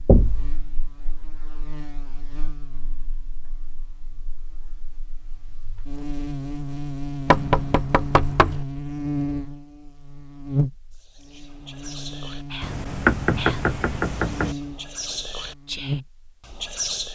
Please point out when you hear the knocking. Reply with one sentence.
You can hear the knocking from 0.1 to 0.6 s, from 7.2 to 8.7 s and from 12.6 to 14.6 s.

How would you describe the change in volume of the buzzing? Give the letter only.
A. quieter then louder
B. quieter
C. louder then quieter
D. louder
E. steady
C.